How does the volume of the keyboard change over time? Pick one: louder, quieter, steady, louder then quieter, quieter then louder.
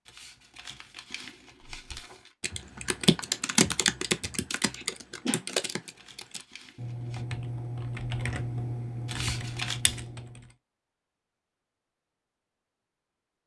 quieter.